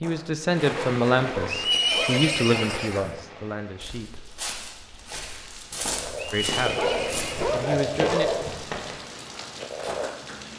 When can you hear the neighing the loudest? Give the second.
2 s.